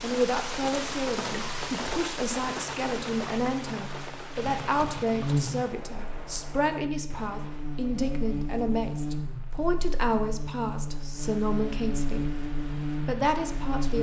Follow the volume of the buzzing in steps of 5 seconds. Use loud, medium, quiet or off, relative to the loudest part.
medium, loud, loud.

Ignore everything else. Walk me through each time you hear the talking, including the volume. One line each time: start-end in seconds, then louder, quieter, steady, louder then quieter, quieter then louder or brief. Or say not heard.
0.0-13.9 steady.